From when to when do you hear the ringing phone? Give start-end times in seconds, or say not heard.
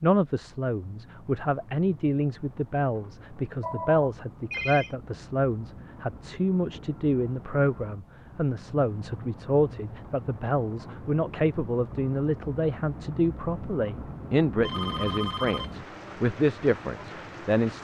3.6-4.9, 14.6-15.8.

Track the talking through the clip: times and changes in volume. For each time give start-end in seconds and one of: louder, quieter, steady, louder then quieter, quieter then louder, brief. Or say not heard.
0.0-17.7 steady.